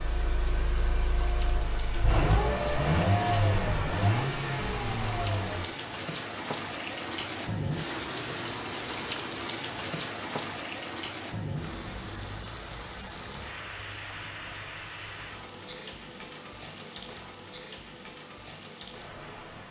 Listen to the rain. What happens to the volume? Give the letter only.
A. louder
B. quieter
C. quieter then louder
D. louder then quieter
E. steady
D.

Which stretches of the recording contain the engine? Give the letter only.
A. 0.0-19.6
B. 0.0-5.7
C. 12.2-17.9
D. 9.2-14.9
B.